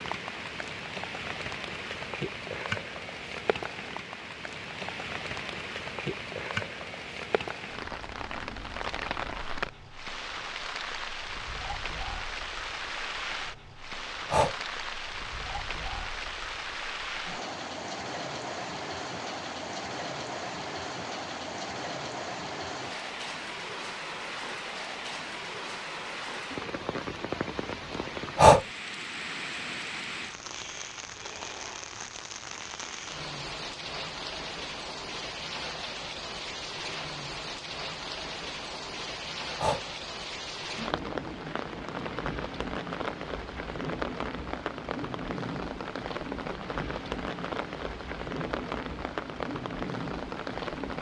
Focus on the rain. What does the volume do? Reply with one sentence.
The loudness of the rain stays about the same.